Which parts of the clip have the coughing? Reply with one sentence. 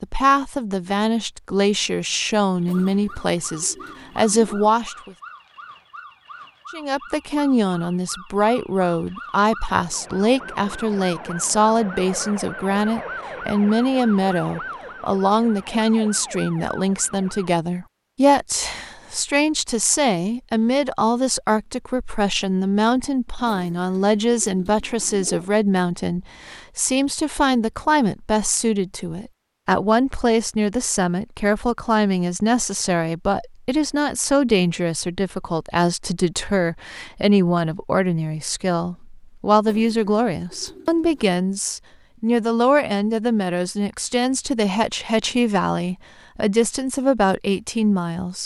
You can't hear the coughing here.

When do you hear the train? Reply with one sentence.
The train can't be heard in this clip.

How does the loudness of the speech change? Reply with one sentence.
The loudness of the speech stays about the same.